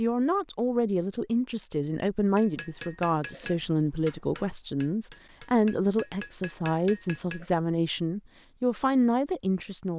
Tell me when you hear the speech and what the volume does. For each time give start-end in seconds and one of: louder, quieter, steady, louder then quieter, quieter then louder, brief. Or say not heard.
0.0-9.9 steady.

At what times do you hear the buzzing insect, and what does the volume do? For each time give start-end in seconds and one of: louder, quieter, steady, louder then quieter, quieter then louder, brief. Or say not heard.
not heard.